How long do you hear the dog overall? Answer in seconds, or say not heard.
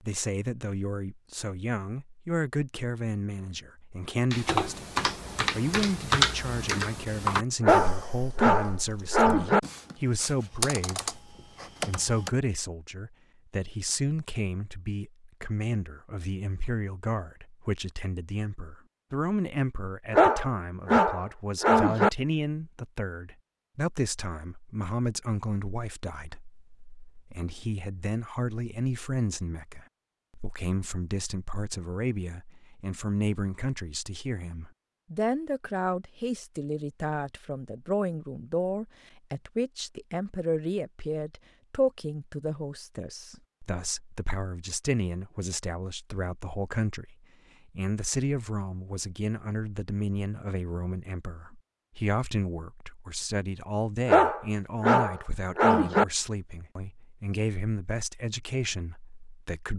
6 s.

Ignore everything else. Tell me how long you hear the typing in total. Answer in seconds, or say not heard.
8 s.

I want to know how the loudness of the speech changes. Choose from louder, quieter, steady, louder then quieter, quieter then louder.
steady.